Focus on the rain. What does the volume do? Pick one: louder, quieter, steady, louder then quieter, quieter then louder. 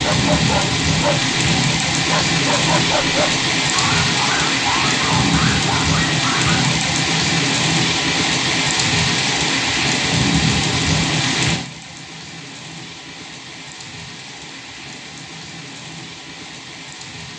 quieter.